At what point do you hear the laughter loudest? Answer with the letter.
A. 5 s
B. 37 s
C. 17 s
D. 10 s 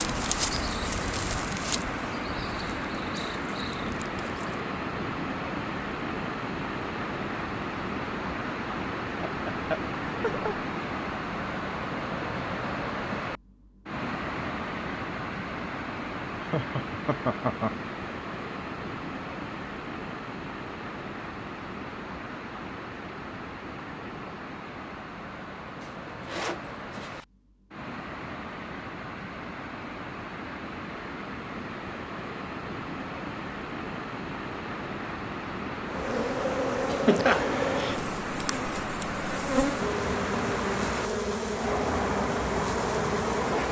B.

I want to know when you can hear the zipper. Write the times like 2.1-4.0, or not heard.
25.8-27.2.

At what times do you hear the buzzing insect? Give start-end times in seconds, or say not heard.
0.0-4.7, 35.9-43.6.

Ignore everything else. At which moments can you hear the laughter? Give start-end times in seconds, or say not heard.
9.2-10.9, 16.4-17.8, 36.9-38.0.